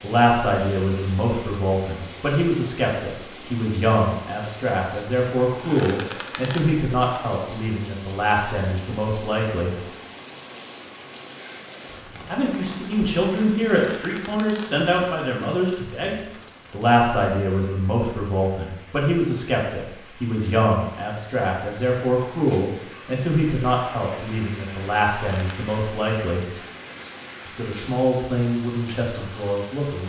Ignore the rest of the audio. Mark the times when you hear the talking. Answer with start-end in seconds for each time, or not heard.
0.0-9.8, 12.2-26.5, 27.4-30.0.